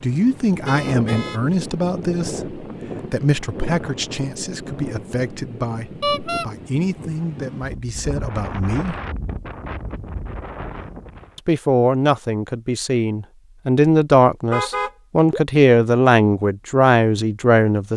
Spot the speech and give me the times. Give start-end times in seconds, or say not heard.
0.0-9.0, 11.3-17.9.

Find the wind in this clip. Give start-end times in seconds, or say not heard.
0.0-11.4.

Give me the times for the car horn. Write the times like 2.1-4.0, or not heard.
0.6-1.6, 6.0-6.5, 14.5-15.4.